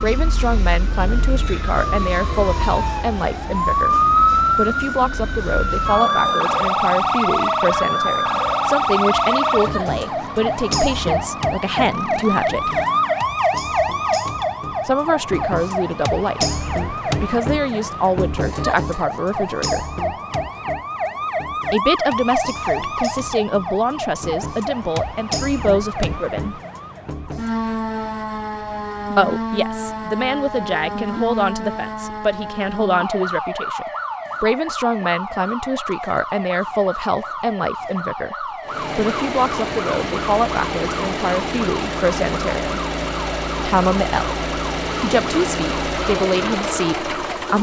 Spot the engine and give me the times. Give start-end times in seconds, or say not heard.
0.0-13.3, 38.6-47.5.